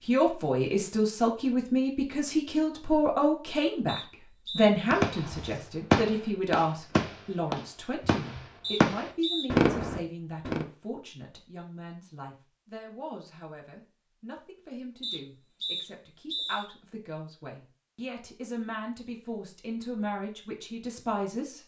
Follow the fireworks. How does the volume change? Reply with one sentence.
The volume of the fireworks goes down, then up.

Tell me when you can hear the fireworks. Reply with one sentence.
The fireworks can be heard from 4.9 to 10.7 s.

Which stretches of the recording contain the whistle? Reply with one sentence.
You can hear the whistle from 3.9 to 4.8 s, from 8.6 to 9.4 s and from 15.0 to 16.7 s.